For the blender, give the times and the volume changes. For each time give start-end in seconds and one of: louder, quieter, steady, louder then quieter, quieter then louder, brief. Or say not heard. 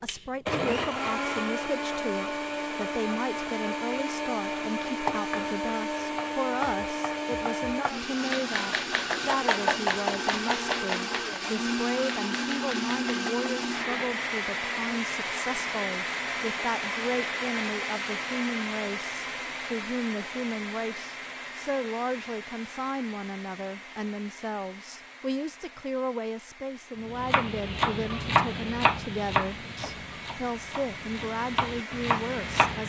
0.0-32.8 quieter.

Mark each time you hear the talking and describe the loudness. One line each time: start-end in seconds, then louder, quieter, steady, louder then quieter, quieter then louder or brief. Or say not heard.
0.0-32.8 steady.